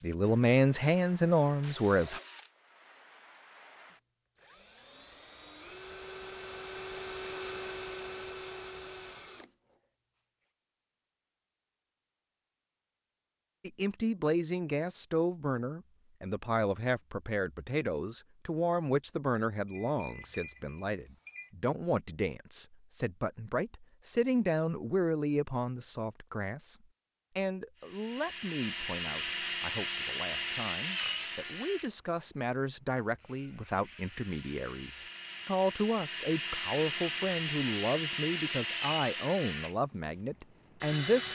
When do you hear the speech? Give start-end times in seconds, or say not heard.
0.0-2.2, 13.6-26.8, 27.4-41.3.